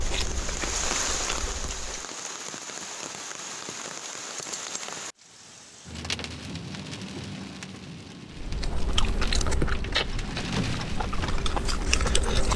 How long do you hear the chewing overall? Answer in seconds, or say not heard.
6 s.